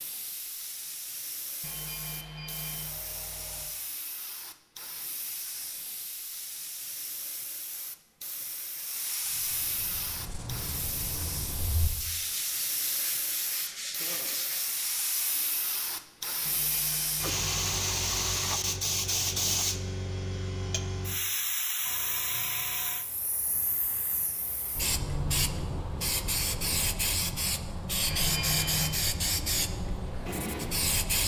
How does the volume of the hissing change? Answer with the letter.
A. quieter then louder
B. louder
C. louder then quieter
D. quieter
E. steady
B.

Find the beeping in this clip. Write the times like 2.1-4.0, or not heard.
1.6-3.6, 16.4-18.2, 28.1-28.9.